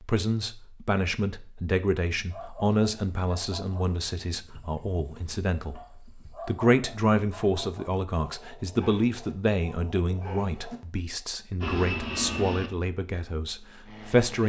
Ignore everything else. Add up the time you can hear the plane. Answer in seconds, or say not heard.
3 s.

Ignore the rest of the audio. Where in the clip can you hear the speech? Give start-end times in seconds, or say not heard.
0.0-5.8, 6.5-14.4.